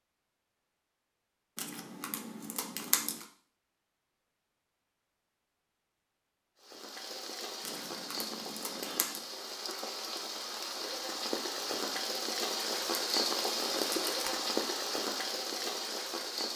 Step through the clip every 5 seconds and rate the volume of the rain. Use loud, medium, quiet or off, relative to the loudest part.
off, medium, loud, loud.